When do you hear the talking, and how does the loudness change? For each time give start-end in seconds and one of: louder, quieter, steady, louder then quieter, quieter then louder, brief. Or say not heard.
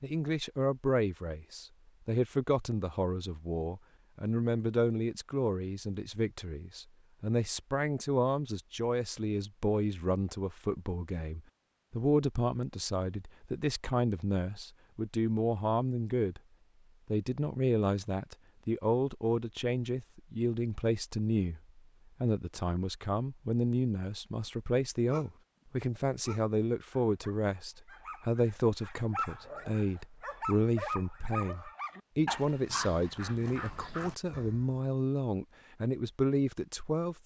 0.0-16.4 steady
17.1-37.2 steady.